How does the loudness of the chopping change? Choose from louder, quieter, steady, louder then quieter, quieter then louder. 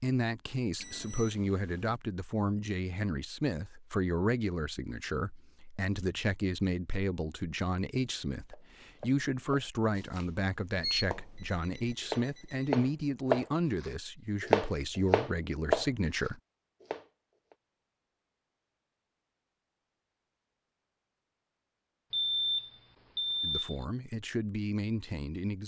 louder.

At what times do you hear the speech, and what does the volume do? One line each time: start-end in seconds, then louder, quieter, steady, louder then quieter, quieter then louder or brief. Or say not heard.
0.0-16.4 steady
23.4-25.6 brief.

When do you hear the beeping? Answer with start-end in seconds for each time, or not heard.
0.8-1.9, 10.8-12.8, 22.1-23.9.